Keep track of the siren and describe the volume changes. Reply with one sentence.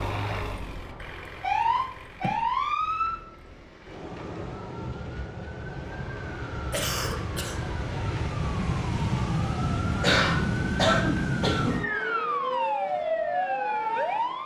The loudness of the siren goes down, then up.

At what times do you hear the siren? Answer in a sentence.
You can hear the siren from 0.0 to 14.4 s.